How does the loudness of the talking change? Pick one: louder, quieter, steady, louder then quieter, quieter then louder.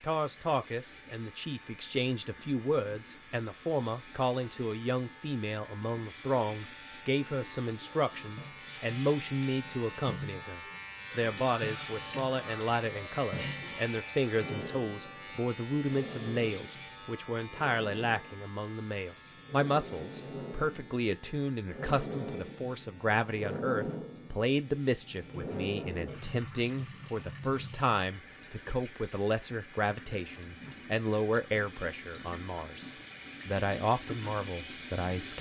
steady.